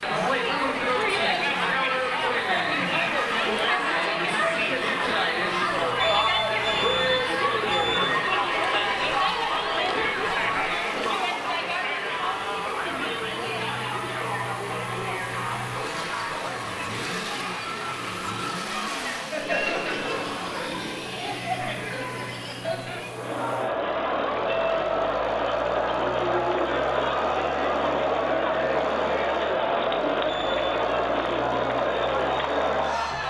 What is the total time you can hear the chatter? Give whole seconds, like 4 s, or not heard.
33 s.